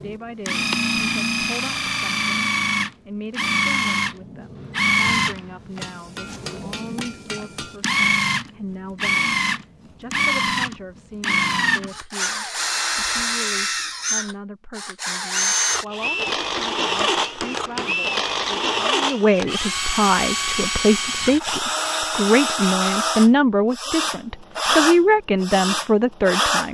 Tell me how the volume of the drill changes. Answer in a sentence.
The loudness of the drill stays about the same.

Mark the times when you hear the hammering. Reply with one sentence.
The hammering can be heard from 5.8 to 7.8 s and from 16.2 to 17.9 s.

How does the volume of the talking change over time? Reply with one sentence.
The loudness of the talking goes up.